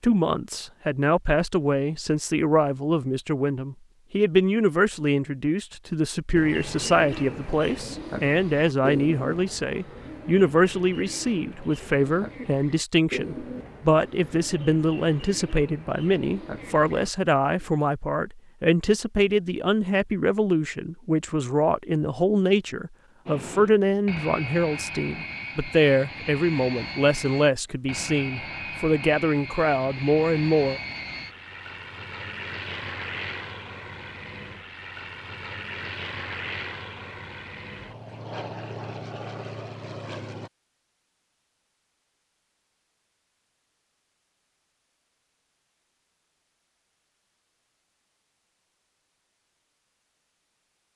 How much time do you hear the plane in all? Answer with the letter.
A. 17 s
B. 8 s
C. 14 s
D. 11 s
A.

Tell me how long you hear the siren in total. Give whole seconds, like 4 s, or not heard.
not heard.